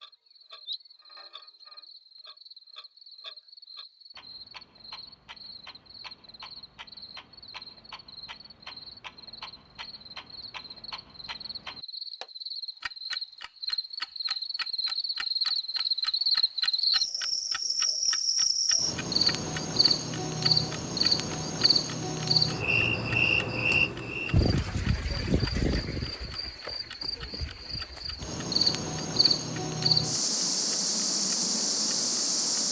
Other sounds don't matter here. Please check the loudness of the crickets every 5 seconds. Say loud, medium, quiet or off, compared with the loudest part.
quiet, quiet, medium, loud, loud, loud, loud.